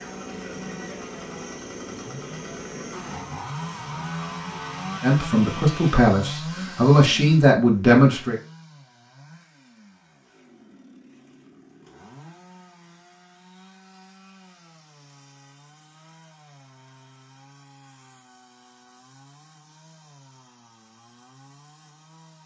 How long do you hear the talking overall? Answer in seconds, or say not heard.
3 s.